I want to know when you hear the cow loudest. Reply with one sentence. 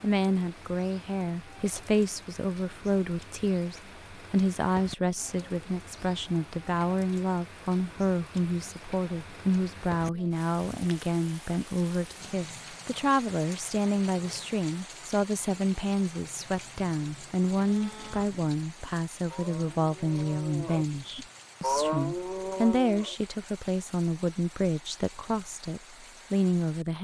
The loudest moment of the cow is at 22 seconds.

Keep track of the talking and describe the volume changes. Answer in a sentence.
The loudness of the talking stays about the same.